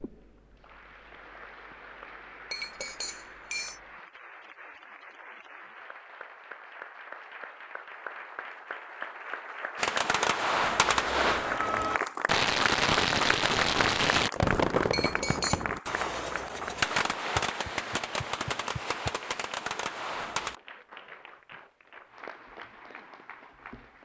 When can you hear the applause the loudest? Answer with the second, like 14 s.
13 s.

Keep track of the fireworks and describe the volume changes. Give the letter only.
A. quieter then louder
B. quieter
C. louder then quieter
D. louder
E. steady
B.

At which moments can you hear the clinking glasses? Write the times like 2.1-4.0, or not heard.
2.5-3.8, 14.9-15.7.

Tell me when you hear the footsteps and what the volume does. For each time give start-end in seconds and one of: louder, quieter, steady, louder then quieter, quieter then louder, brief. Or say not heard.
not heard.